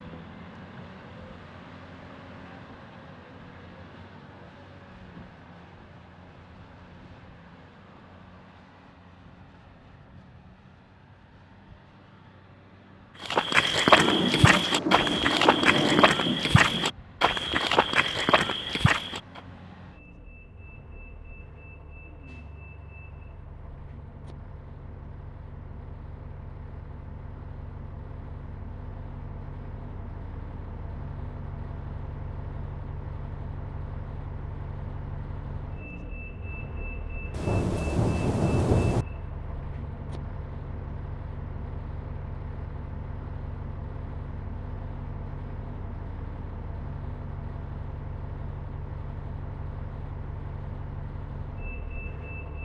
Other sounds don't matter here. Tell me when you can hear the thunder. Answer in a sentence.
You can hear the thunder from 13.9 to 16.9 s and from 37.4 to 39.0 s.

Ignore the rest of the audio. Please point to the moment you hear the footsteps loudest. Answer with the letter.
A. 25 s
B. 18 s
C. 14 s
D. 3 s
C.